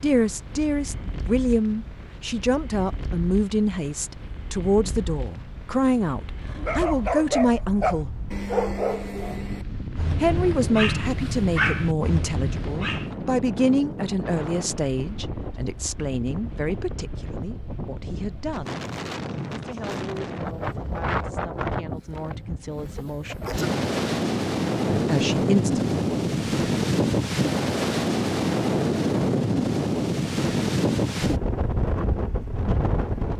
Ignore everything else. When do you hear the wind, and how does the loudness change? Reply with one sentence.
You can hear the wind from 0.0 to 33.3 s, getting louder.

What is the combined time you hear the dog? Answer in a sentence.
You can hear the dog for 7 seconds altogether.